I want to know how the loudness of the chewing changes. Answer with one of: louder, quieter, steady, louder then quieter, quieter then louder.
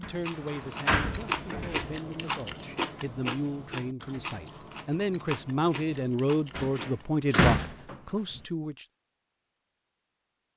quieter.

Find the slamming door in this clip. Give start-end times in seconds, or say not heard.
0.0-1.9, 6.5-8.4.